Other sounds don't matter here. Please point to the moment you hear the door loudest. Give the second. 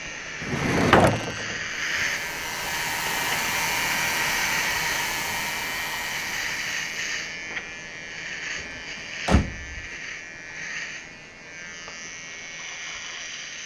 1 s.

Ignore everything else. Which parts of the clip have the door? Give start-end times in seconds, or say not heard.
0.4-1.6, 8.6-9.8.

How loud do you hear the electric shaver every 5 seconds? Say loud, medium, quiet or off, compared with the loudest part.
loud, loud, medium.